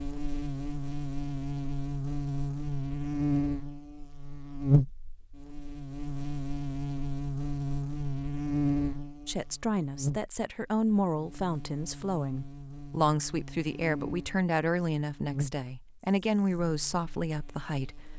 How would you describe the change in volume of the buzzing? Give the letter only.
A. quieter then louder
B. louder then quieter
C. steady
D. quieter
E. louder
D.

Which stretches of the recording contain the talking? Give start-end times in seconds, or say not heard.
9.2-18.1.